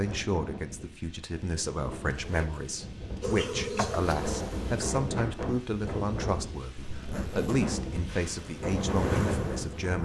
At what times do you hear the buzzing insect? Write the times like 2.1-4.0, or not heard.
3.2-4.8, 8.2-10.0.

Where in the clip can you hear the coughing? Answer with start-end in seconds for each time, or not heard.
not heard.